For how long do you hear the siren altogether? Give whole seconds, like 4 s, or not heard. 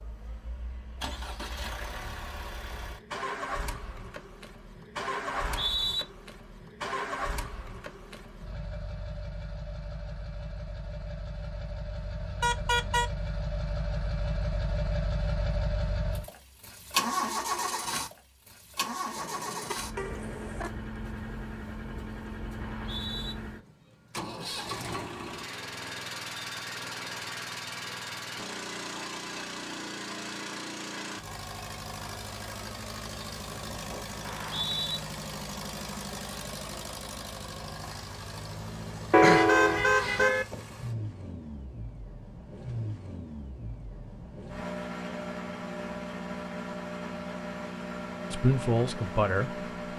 not heard.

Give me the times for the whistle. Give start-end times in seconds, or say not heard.
5.3-6.0, 22.6-23.4, 34.2-35.0.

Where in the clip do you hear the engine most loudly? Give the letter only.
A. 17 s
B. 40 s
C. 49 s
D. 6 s
A.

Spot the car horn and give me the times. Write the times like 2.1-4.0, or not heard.
12.4-13.1, 19.1-20.7, 39.1-40.5.